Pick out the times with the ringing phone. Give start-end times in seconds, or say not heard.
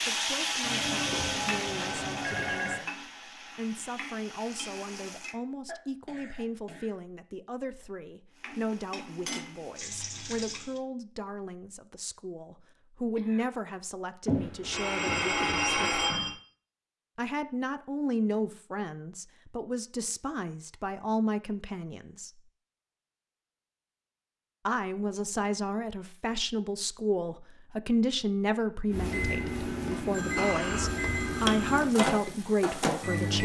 0.6-2.8, 14.2-16.4, 30.1-31.8.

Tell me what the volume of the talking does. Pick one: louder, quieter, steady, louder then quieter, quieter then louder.
louder.